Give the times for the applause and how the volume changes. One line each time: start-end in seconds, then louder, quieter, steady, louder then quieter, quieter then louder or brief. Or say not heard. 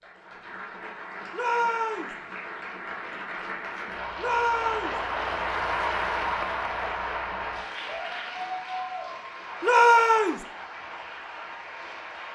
0.0-12.3 louder then quieter.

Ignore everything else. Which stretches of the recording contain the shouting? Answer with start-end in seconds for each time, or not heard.
1.3-2.1, 4.2-5.0, 9.6-10.4.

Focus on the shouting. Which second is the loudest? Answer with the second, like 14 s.
10 s.